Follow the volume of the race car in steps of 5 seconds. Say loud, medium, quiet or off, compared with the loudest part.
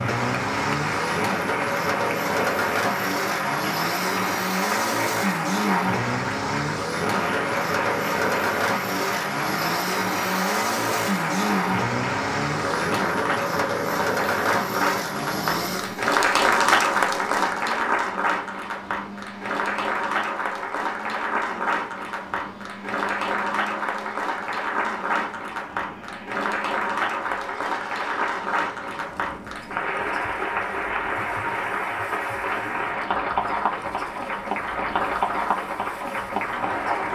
loud, loud, loud, medium, quiet, quiet, quiet, quiet.